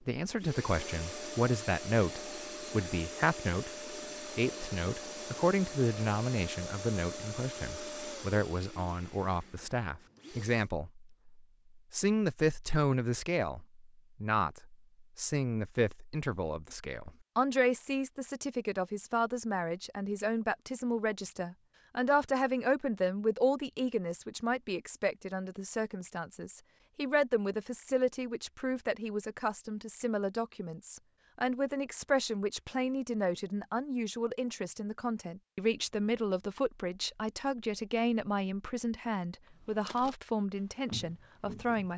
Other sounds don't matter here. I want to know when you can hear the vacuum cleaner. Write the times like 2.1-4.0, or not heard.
0.0-10.7.